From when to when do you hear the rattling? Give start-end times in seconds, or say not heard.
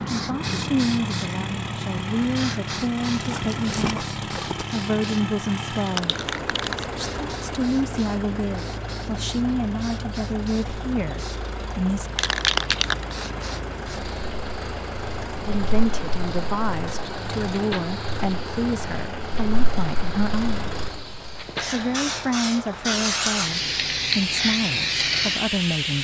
3.2-4.8.